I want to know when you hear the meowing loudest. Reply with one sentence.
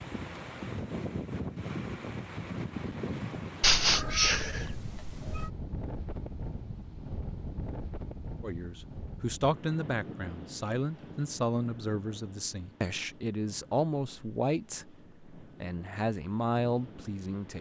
The loudest moment of the meowing is at 4 seconds.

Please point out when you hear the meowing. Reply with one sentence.
The meowing can be heard from 3.6 to 5.5 s.